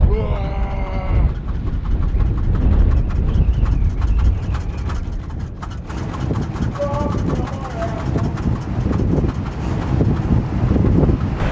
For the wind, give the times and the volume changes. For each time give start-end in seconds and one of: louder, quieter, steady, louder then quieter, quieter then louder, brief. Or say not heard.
0.0-11.4 louder.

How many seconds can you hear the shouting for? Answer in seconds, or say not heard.
3 s.